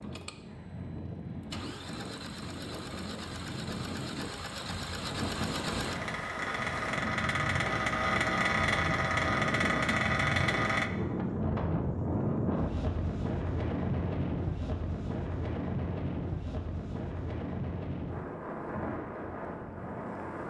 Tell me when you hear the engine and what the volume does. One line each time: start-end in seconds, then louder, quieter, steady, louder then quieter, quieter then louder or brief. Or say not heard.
0.0-10.9 louder.